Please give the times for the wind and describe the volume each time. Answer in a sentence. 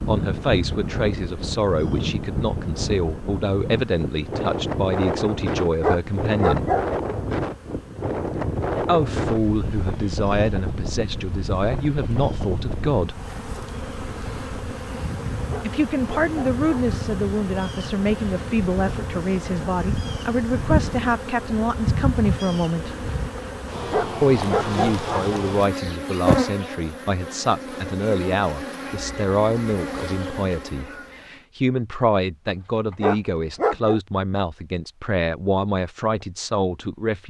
You can hear the wind from 0.0 to 21.2 s, getting quieter.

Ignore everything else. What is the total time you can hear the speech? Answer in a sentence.
You can hear the speech for 31 seconds altogether.